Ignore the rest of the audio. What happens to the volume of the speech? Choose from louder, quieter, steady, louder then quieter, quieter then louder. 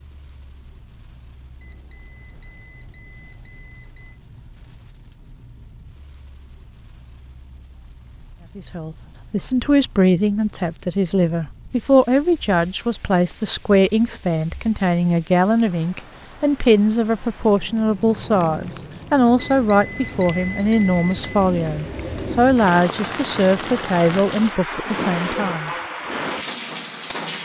steady.